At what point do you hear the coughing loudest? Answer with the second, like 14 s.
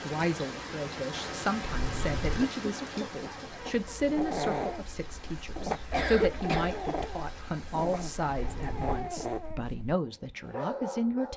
6 s.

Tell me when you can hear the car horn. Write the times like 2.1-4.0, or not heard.
1.6-2.5, 8.2-9.1.